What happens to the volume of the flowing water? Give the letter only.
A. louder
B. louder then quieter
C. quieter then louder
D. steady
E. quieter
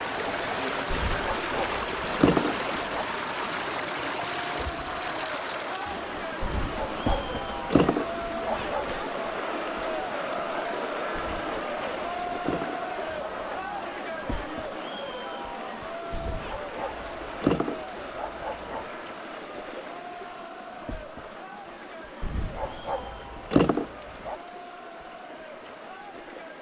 E.